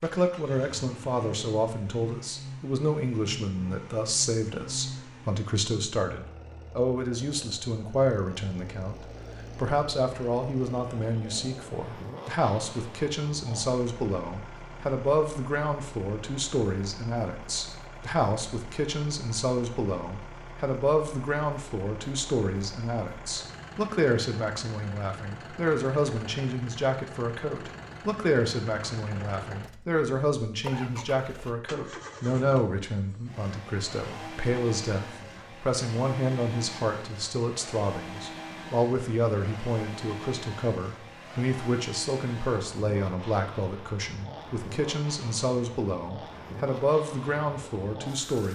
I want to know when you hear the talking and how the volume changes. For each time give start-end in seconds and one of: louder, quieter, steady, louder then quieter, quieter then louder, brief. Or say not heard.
0.0-48.5 steady.